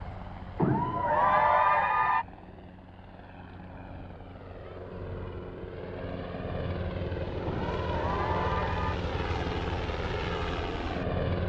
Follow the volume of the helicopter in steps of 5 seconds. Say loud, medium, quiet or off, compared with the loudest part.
quiet, loud, loud.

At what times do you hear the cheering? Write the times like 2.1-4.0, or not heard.
0.6-2.2, 7.5-8.9.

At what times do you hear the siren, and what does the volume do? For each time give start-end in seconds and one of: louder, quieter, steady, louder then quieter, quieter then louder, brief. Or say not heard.
not heard.